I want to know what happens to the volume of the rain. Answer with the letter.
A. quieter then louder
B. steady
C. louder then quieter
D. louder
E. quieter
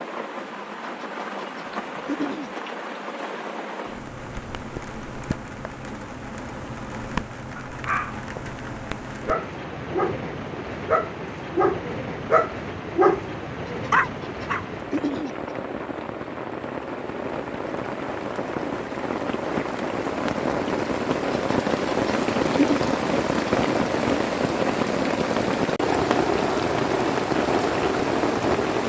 D.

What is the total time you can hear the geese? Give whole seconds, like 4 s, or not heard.
5 s.